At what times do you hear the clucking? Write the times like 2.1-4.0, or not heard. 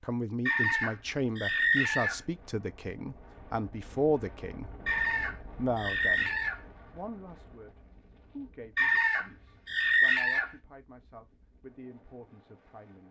0.5-2.2, 4.8-6.6, 8.8-10.5.